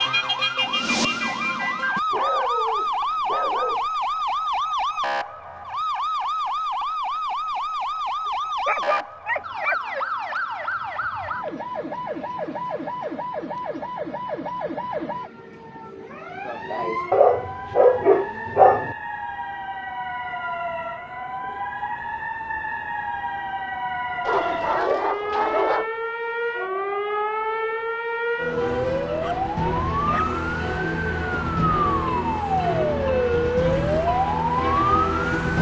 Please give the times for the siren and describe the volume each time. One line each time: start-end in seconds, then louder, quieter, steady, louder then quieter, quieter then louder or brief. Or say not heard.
0.0-35.5 quieter then louder.